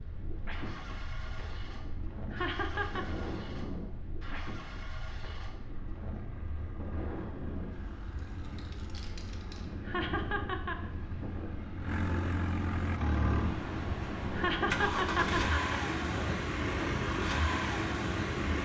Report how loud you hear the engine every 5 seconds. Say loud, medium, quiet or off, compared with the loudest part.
quiet, quiet, loud, loud.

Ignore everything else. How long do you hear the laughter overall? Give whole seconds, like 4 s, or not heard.
3 s.